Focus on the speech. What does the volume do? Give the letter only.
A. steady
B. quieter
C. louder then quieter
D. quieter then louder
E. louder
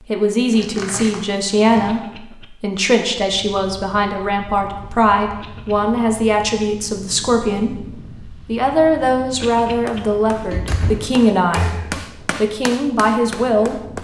A.